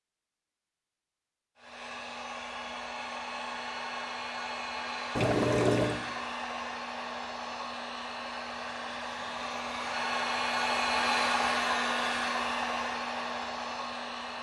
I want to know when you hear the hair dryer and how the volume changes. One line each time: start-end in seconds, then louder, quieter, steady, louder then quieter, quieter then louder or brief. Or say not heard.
1.6-14.3 louder.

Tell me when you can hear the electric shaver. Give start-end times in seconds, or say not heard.
not heard.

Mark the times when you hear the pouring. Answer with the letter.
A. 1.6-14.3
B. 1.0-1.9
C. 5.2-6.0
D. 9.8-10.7
C.